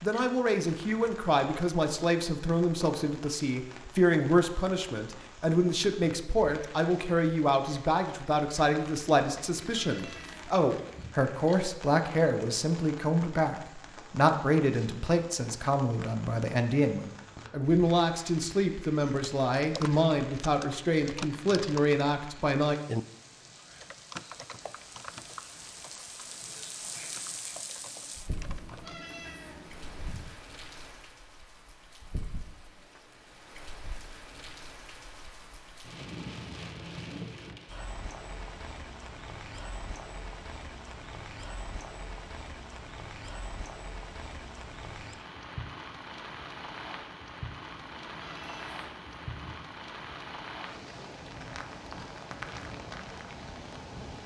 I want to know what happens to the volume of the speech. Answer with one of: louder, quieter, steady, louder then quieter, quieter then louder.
steady.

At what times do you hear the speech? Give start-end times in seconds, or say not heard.
0.0-22.8.